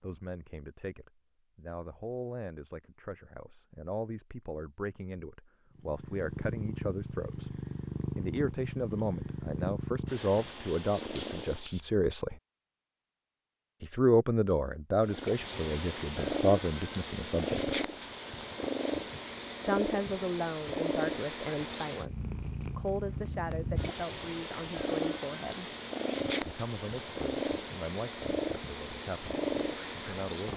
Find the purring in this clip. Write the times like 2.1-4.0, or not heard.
5.8-11.8, 15.0-30.5.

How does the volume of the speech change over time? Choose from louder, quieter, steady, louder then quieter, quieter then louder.
louder then quieter.